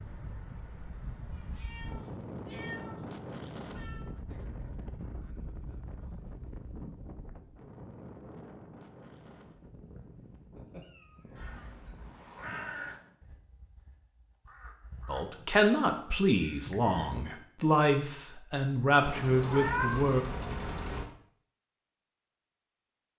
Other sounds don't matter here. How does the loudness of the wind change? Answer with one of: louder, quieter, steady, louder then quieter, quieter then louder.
quieter.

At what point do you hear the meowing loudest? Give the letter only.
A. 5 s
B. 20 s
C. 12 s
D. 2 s
B.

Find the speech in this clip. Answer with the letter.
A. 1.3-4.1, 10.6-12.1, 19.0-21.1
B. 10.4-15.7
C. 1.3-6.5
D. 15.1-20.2
D.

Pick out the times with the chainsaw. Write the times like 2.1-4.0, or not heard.
not heard.